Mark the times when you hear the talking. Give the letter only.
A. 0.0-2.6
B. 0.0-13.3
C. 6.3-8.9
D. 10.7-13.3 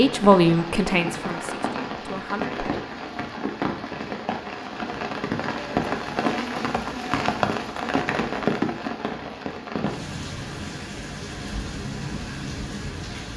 A.